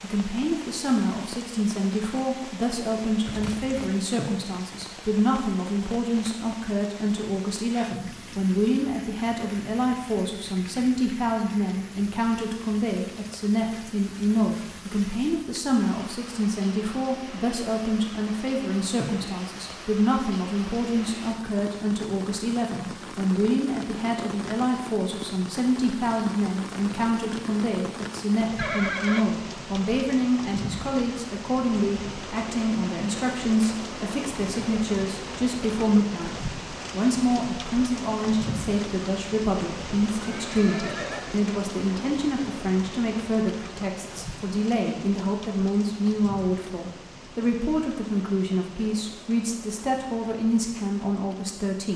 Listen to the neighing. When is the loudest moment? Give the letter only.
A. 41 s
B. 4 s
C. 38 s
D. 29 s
D.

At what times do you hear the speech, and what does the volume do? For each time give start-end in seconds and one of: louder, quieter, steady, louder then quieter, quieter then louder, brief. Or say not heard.
0.0-51.9 steady.